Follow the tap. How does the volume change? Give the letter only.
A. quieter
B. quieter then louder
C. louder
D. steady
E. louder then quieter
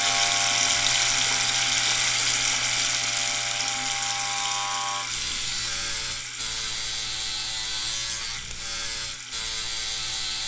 A.